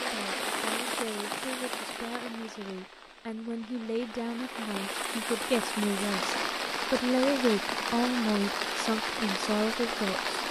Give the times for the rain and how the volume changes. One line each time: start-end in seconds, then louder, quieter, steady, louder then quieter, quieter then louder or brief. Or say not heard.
0.0-10.4 quieter then louder.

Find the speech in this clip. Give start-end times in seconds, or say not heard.
0.0-10.3.